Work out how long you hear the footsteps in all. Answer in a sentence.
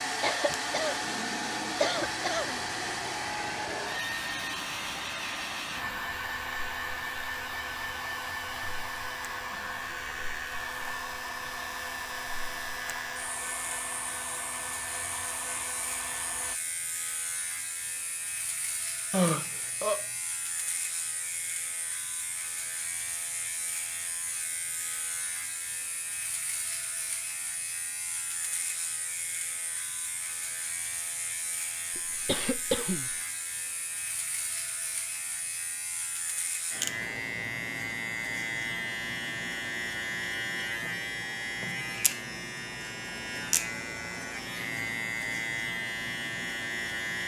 The footsteps can't be heard in this clip.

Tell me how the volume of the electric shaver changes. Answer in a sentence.
The volume of the electric shaver goes up.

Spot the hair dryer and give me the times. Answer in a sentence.
You can hear the hair dryer from 0.0 to 16.6 s.